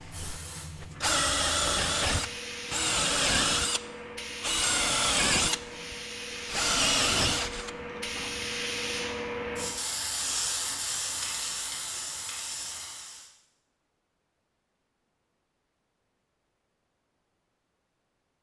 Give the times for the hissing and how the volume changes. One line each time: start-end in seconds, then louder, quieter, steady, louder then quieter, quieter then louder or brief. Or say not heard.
0.0-13.3 louder.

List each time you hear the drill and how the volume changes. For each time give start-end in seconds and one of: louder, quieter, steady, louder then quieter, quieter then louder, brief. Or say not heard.
0.0-8.4 steady.